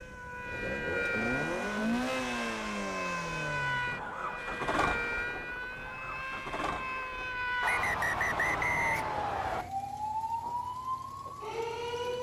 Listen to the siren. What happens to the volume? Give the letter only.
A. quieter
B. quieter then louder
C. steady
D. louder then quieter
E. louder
C.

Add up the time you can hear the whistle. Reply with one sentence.
The whistle can be heard for 2 seconds in total.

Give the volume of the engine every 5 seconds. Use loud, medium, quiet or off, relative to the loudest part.
loud, medium, quiet.